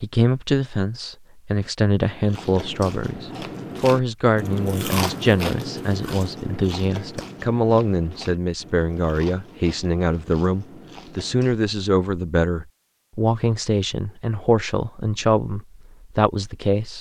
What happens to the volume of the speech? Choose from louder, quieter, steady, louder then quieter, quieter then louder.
steady.